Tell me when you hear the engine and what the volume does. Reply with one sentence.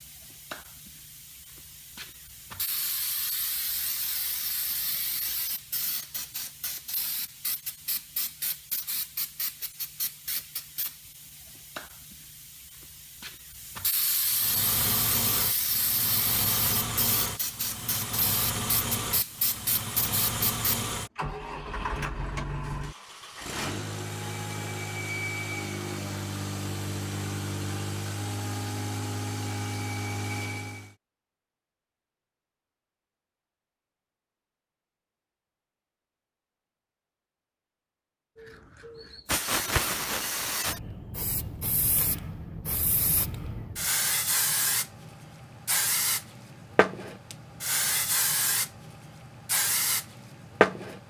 The engine can be heard from 14.2 to 30.9 s, at a steady volume.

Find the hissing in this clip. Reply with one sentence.
The hissing can be heard from 0.0 to 20.9 s and from 38.4 to 51.0 s.